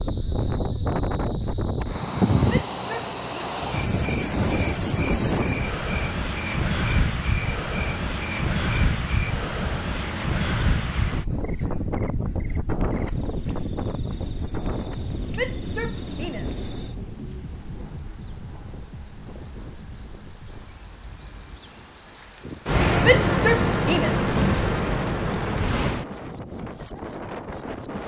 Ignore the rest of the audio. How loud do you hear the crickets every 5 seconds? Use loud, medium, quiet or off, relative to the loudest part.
quiet, quiet, quiet, medium, loud, medium.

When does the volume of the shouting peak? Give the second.
23 s.